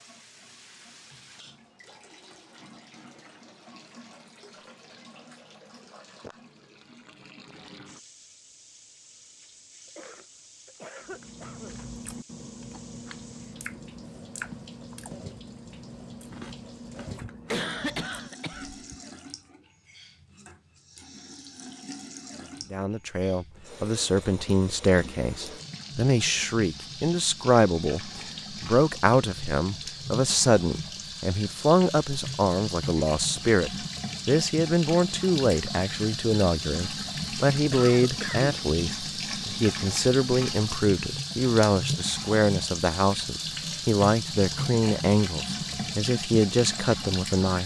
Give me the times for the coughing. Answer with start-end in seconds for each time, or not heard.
9.9-11.8, 17.1-18.9, 37.7-38.6.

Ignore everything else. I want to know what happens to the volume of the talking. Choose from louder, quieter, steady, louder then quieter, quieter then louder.
steady.